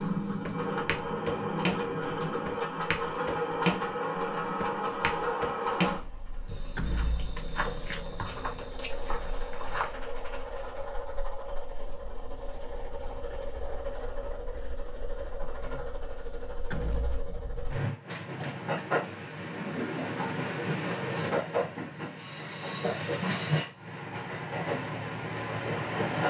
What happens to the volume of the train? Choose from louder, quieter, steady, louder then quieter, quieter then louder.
quieter then louder.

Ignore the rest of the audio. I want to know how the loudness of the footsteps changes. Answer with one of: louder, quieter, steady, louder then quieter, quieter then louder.
quieter.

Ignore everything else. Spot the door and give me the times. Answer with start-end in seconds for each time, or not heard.
6.8-7.3, 16.7-17.2.